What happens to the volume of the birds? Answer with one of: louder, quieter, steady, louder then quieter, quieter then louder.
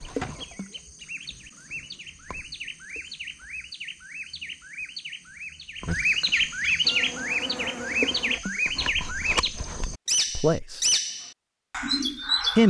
louder.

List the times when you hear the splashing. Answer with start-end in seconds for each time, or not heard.
0.1-0.8, 7.9-8.6.